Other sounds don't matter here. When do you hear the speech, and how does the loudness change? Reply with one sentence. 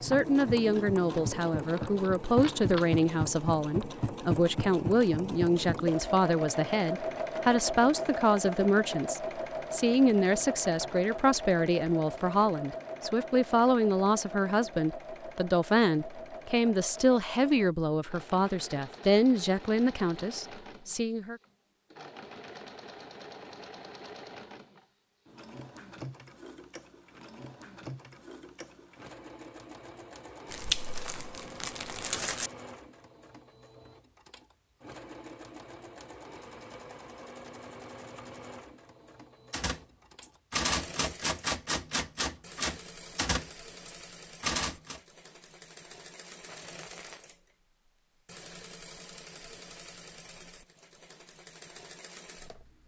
You can hear the speech from 0.0 to 21.4 s, at a steady volume.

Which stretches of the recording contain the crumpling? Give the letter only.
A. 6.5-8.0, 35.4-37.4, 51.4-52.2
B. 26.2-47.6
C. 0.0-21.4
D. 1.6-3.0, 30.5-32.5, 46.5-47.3
D.